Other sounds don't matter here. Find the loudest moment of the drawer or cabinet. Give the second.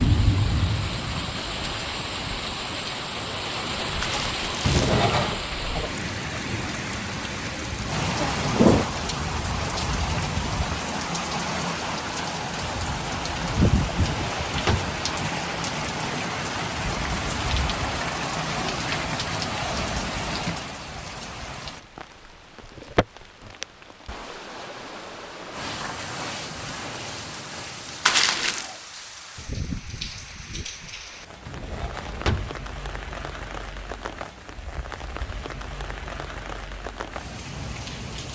5 s.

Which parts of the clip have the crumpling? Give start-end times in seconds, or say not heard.
4.0-5.0, 28.1-28.7.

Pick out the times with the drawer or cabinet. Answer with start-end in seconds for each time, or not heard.
4.6-5.4, 13.8-15.0, 31.4-32.6.